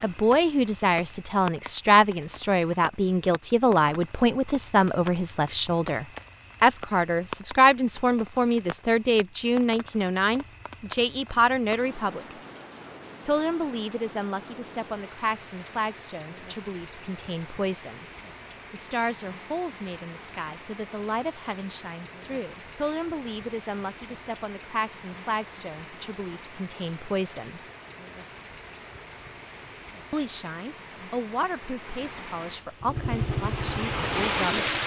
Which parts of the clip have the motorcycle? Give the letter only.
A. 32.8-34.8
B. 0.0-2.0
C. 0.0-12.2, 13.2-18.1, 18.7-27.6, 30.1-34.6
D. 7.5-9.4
A.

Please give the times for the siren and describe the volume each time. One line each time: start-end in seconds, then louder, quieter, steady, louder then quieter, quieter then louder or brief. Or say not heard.
not heard.